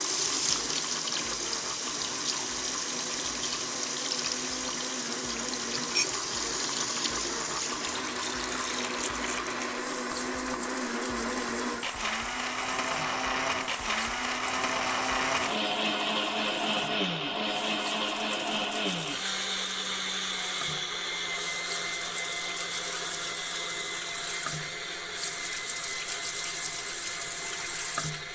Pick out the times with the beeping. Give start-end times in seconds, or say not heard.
not heard.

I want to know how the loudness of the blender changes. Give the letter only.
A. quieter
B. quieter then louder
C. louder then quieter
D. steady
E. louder
C.